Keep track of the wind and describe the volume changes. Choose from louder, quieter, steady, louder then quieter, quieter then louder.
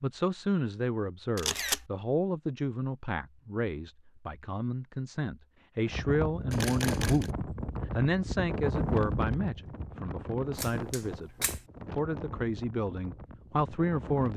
quieter.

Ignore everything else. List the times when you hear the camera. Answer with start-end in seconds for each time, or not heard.
1.4-1.9, 6.5-7.3, 10.6-11.6.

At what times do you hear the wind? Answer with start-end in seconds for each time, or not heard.
5.8-14.3.